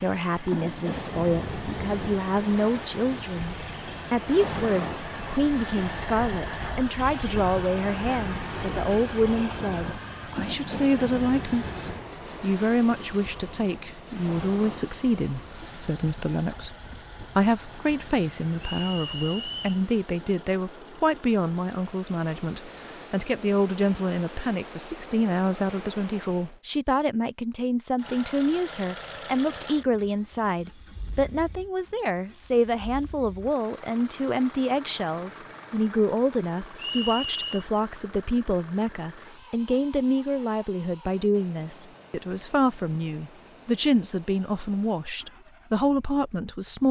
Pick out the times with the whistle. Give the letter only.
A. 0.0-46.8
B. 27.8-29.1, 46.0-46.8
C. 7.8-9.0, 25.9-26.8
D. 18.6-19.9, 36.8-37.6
D.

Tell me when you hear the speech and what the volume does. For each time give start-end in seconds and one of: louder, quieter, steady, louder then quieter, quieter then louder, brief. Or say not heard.
0.0-46.8 steady.